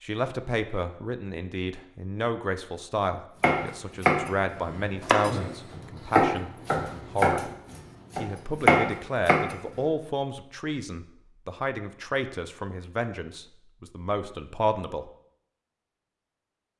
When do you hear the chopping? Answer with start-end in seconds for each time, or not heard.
3.4-9.6.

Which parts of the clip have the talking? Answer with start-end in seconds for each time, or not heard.
0.0-7.5, 8.2-15.1.